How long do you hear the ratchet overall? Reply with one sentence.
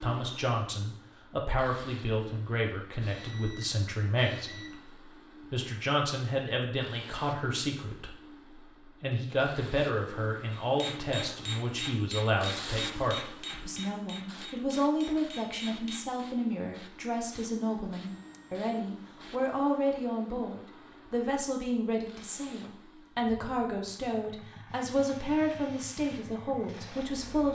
The ratchet can't be heard in this clip.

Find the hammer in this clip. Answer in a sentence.
You can hear the hammer from 10.5 to 16.1 s.